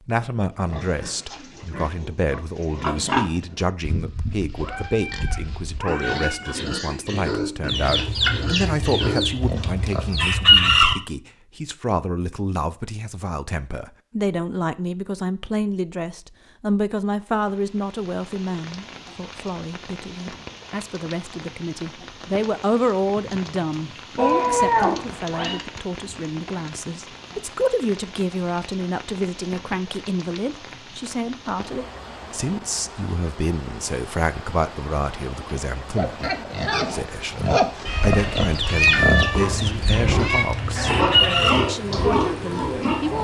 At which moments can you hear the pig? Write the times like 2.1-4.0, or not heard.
0.6-10.2, 36.0-43.1.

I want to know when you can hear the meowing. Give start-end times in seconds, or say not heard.
4.5-6.6, 24.1-25.6, 37.9-40.5.